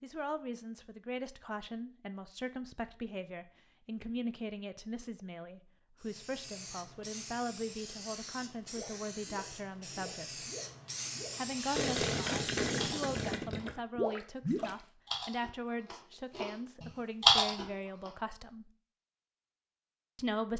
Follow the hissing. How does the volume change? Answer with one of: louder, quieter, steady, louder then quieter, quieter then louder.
louder.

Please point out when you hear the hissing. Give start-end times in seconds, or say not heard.
6.0-13.4.